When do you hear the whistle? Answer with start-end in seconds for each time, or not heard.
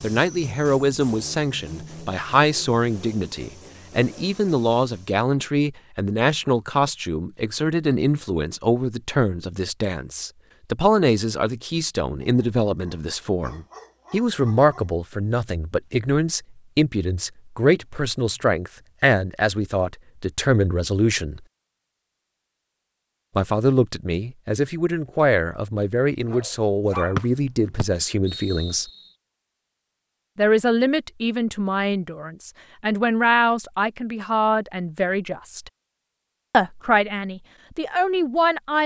27.1-29.1.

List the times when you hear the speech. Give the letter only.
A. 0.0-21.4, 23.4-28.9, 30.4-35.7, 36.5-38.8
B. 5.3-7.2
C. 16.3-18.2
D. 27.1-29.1
A.